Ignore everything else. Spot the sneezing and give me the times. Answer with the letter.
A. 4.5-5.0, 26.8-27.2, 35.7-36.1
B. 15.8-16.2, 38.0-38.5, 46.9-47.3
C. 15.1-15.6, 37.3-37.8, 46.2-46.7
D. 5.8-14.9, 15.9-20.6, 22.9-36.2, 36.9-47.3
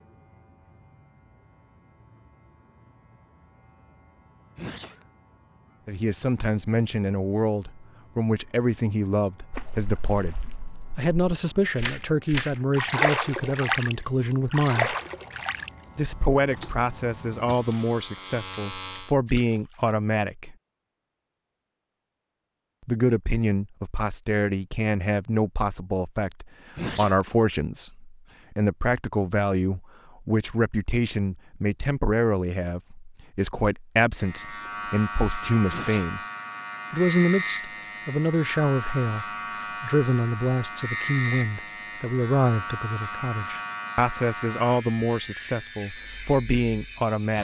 A.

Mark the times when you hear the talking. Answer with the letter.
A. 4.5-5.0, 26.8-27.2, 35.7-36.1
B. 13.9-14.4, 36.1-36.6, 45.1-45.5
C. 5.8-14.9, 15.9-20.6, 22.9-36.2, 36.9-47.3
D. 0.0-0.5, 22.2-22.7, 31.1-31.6
C.